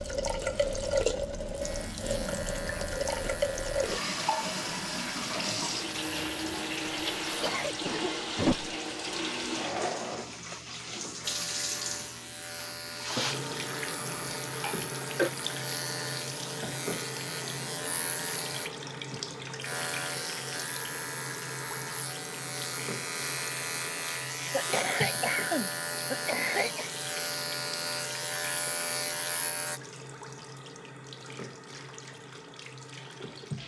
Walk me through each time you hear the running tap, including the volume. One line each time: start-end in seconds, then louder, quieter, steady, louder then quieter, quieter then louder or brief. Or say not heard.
0.0-33.6 quieter.